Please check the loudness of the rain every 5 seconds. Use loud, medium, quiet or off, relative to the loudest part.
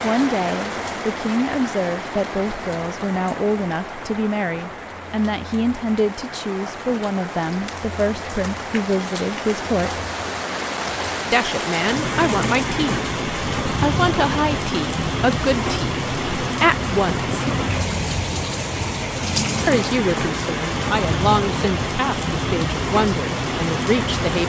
medium, medium, loud, loud, loud.